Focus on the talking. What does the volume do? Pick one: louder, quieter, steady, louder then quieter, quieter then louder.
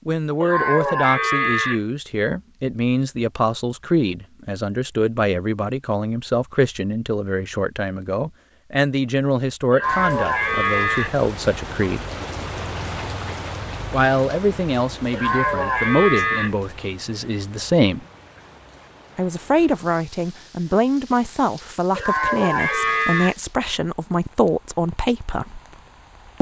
steady.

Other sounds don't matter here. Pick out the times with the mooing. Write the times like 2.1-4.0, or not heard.
0.4-1.8, 9.7-11.1, 15.1-16.6, 21.9-23.4.